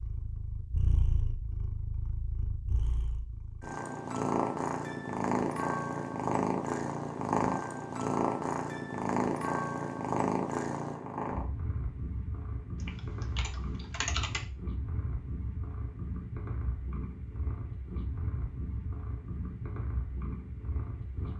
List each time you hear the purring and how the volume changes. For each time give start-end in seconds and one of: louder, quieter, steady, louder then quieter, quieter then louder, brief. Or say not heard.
0.0-21.3 louder then quieter.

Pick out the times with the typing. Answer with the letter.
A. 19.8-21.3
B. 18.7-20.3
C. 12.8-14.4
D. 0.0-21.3
C.